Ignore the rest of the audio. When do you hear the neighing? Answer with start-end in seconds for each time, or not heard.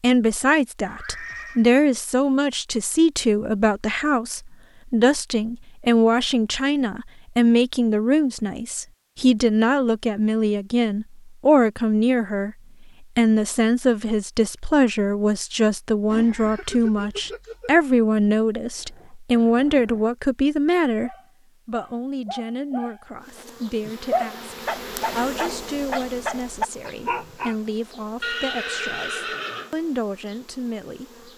0.8-1.6, 16.1-17.8, 28.2-29.8.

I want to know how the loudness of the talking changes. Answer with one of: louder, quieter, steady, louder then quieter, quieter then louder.
quieter.